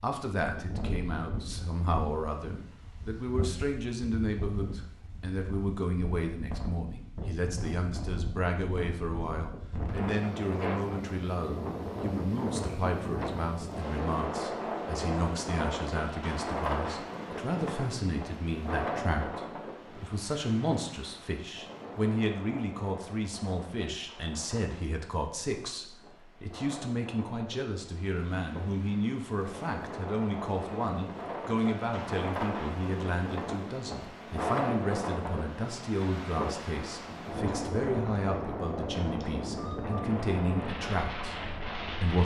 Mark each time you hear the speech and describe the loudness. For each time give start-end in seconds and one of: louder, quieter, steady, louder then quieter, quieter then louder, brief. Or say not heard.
0.0-42.2 steady.